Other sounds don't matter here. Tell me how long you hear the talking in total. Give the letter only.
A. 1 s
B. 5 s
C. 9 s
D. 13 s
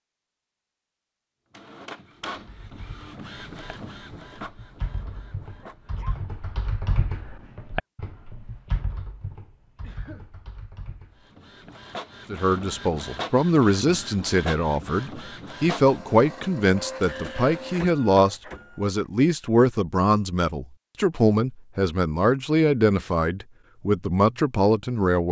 D.